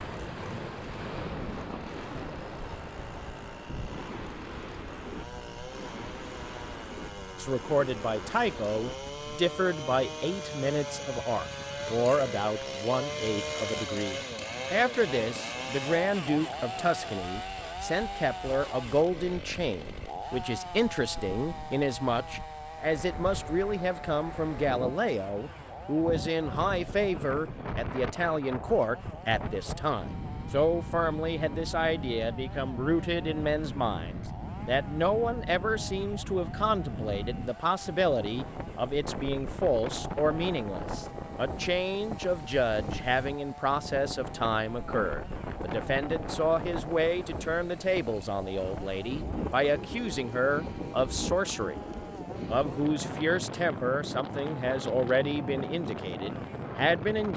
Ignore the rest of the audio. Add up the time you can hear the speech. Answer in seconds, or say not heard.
49 s.